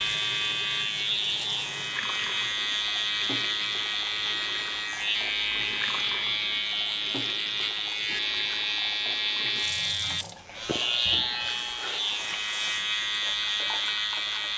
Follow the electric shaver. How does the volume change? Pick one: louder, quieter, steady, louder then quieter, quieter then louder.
steady.